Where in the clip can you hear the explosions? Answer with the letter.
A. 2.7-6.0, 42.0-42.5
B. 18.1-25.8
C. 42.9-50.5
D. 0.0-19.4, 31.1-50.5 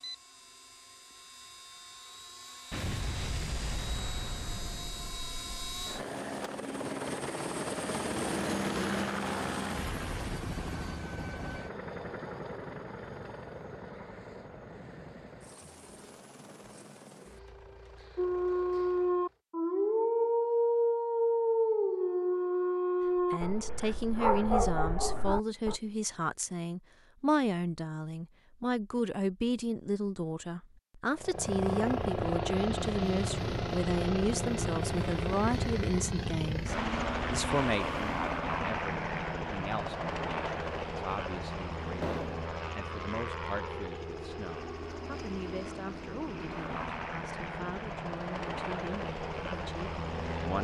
A.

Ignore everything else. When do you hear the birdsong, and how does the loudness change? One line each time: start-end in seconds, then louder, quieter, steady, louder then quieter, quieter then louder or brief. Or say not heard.
not heard.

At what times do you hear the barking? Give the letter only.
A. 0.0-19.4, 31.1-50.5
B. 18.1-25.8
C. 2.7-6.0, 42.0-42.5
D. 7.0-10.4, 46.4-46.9
B.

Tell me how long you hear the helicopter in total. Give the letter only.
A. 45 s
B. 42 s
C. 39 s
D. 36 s
C.